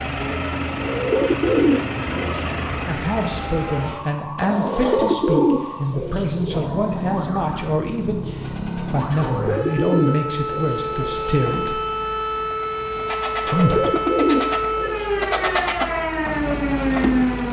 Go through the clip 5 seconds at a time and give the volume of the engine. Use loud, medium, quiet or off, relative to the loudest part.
loud, medium, medium, loud.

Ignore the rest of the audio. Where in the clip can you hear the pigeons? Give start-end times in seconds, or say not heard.
0.8-2.5, 4.6-6.7, 9.2-11.3, 13.4-15.6.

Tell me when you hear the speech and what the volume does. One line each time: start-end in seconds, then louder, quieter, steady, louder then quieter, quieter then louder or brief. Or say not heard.
2.9-11.8 steady
13.4-13.9 brief.